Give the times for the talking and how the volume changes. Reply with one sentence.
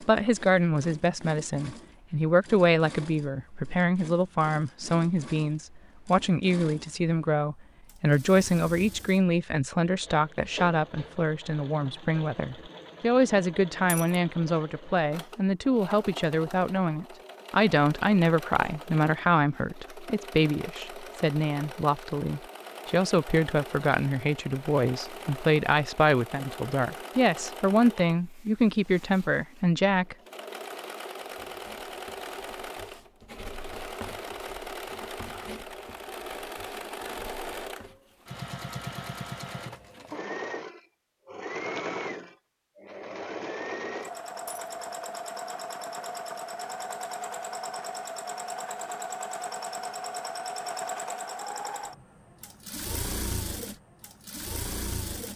The talking can be heard from 0.0 to 30.1 s, at a steady volume.